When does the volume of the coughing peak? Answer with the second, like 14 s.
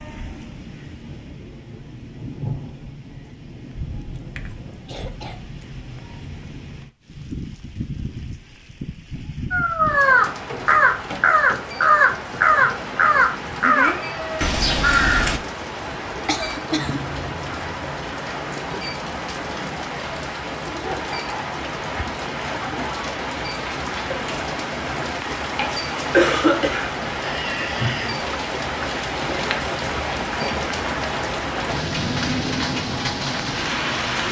26 s.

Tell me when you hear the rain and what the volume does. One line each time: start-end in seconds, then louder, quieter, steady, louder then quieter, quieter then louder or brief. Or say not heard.
0.0-34.2 louder.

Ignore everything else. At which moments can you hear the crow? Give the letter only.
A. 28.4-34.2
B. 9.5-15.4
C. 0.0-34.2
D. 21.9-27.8
B.